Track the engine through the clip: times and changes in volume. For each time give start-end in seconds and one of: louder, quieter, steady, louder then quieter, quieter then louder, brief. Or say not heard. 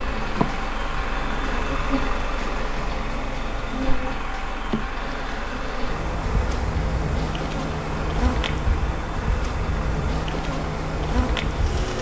0.0-11.9 quieter.